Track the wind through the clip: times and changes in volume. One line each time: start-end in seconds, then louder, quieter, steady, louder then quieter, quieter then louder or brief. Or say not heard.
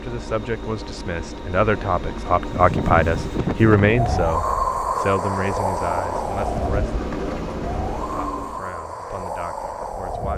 2.4-10.3 quieter.